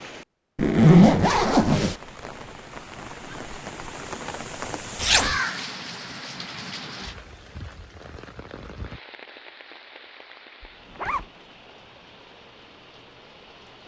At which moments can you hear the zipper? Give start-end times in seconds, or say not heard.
0.6-1.9, 5.0-5.4, 10.6-11.2.